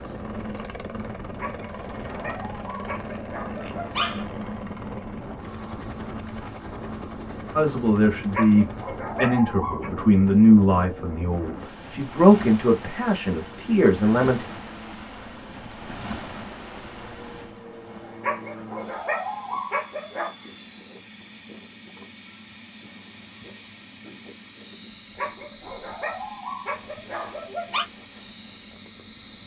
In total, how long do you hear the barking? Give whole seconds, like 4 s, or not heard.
9 s.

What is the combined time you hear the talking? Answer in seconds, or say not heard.
7 s.